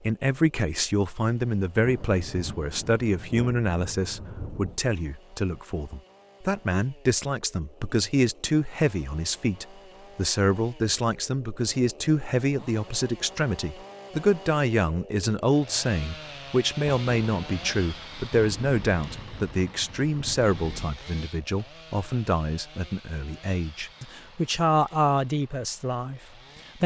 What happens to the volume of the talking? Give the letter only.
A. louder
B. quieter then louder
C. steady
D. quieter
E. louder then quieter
C.